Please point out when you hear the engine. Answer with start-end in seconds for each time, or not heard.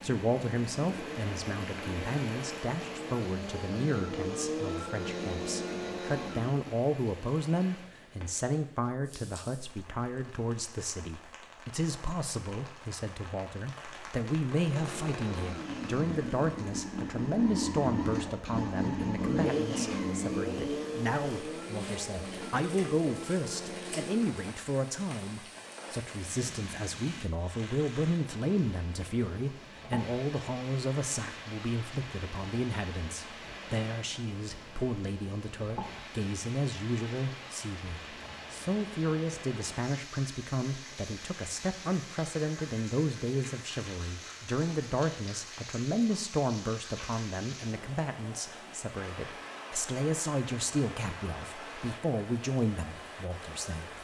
0.0-6.8, 14.6-24.4.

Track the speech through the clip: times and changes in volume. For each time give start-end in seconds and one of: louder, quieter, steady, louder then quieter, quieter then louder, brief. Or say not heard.
0.0-53.9 steady.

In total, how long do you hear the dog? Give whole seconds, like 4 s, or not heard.
not heard.